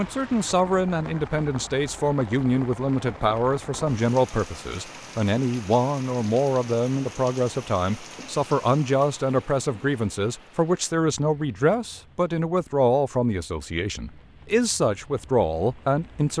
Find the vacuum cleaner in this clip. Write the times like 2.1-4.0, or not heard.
not heard.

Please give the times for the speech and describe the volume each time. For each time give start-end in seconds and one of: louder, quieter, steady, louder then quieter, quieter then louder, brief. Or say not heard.
0.0-16.3 steady.